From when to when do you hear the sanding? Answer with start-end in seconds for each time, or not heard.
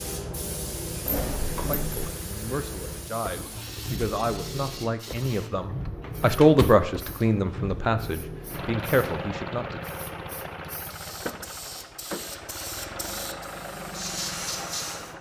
not heard.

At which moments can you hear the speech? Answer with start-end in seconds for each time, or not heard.
1.6-9.8.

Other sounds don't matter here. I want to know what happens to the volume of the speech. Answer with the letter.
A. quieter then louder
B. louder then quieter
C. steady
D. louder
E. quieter
B.